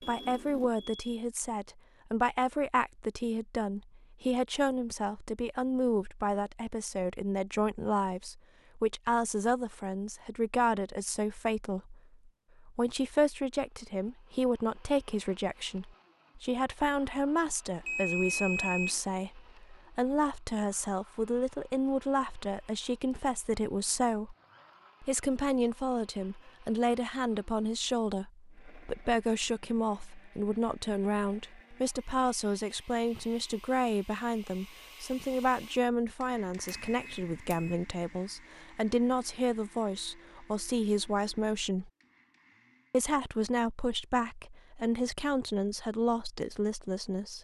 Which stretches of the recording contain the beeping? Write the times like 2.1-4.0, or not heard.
0.0-1.1, 17.9-19.0, 36.6-37.8.